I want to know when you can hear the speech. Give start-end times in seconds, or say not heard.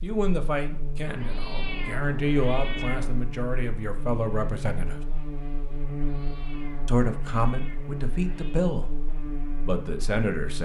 0.0-5.0, 6.8-8.9, 9.7-10.5.